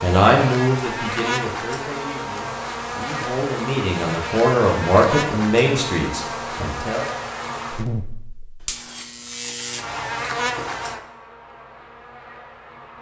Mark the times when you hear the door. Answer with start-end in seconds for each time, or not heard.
not heard.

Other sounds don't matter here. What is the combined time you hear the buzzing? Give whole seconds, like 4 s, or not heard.
13 s.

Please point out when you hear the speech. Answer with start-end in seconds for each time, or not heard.
0.0-7.0.